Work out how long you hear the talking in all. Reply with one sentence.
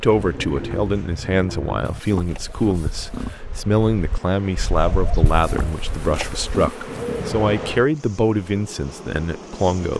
The talking can be heard for 10 seconds in total.